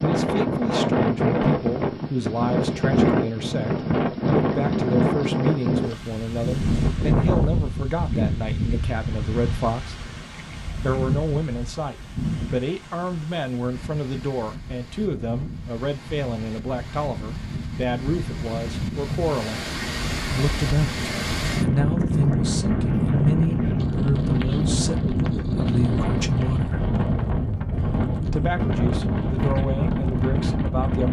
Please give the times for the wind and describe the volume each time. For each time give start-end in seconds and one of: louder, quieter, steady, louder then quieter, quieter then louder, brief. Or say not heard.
0.0-31.0 quieter then louder.